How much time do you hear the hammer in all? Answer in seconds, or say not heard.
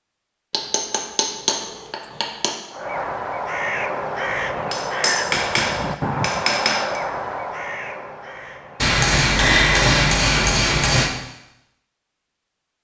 7 s.